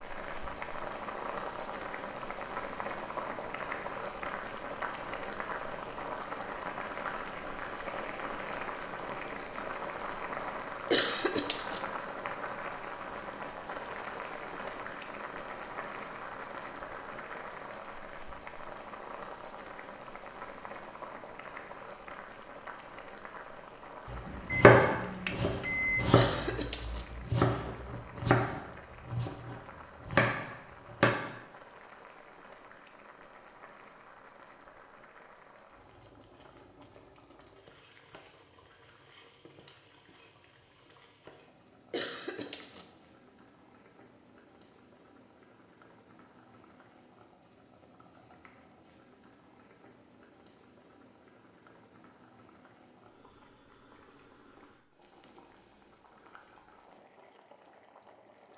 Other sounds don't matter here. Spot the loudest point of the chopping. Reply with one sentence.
The volume of the chopping peaks at 25 seconds.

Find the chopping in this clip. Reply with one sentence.
The chopping can be heard from 24.1 to 31.1 s.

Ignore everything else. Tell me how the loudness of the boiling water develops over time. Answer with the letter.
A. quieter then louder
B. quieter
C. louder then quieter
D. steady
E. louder
B.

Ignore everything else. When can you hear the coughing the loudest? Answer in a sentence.
The loudest moment of the coughing is at 11 seconds.